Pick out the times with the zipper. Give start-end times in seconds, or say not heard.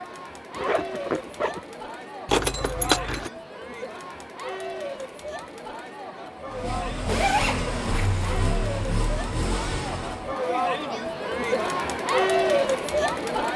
0.5-1.6, 7.0-8.2.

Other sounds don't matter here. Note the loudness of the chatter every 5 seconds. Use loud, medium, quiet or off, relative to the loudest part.
medium, medium, loud.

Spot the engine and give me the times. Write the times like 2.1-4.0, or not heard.
6.5-10.3.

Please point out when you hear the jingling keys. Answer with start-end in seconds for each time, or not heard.
2.2-3.3.